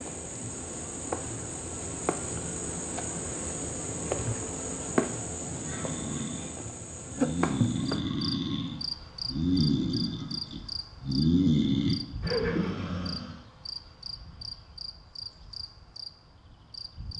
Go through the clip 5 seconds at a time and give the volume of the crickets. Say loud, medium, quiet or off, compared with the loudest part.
loud, loud, medium, medium.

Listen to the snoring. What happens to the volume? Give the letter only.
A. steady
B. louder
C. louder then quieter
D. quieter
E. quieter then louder
B.